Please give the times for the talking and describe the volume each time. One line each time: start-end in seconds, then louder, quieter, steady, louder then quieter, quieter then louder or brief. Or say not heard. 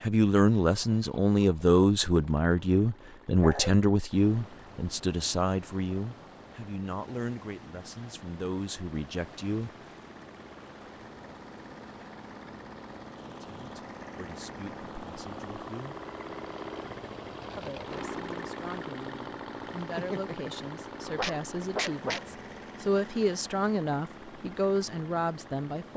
0.0-9.7 quieter
13.6-16.0 brief
17.6-25.9 louder.